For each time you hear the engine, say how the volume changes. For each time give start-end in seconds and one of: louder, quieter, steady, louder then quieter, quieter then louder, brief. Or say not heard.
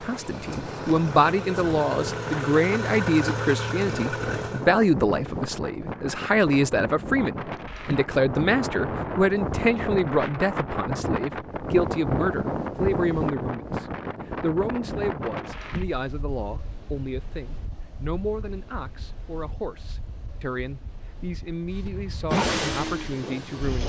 0.0-4.7 louder
21.8-23.8 brief.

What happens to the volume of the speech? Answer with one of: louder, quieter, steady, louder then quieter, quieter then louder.
quieter.